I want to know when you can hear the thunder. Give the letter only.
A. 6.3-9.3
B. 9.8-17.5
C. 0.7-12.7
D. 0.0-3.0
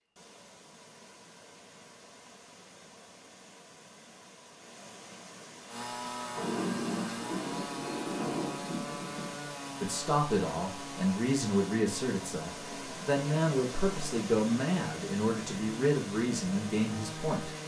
A.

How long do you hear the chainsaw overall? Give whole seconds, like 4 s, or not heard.
12 s.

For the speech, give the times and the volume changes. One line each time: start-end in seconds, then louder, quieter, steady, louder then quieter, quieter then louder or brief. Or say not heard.
9.8-17.5 steady.